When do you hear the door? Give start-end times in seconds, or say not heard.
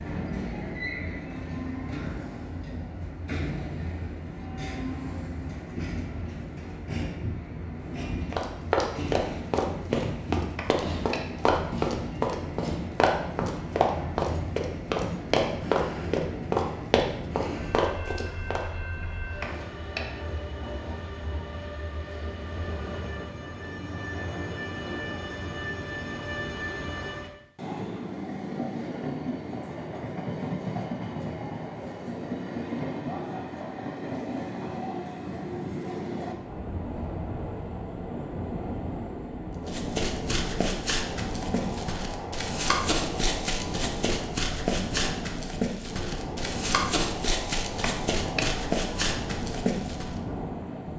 10.6-11.2, 19.4-20.1, 47.8-48.5.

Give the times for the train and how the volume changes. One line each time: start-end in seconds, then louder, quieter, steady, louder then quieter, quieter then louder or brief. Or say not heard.
0.0-50.9 steady.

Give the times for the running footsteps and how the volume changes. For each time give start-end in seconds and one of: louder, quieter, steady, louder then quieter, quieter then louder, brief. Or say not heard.
8.3-18.6 steady
39.6-50.2 steady.